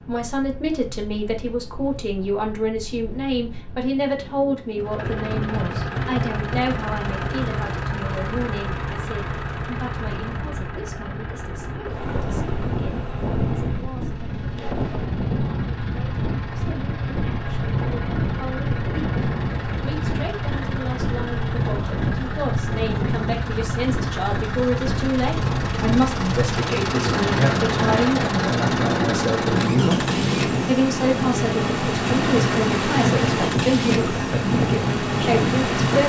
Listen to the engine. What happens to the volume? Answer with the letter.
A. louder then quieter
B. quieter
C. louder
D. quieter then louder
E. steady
D.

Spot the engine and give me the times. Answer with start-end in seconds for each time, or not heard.
4.8-36.0.